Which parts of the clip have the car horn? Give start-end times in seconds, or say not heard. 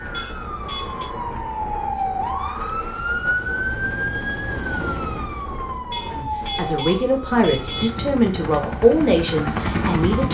0.1-1.1, 5.9-7.9.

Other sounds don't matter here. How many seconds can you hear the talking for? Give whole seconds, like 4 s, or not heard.
4 s.